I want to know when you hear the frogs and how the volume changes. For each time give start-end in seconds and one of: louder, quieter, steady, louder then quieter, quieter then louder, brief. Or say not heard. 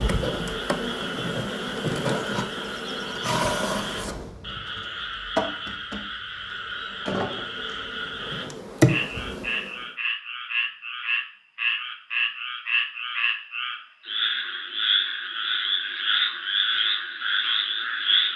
0.0-18.3 louder.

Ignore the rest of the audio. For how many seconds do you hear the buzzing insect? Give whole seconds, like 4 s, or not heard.
10 s.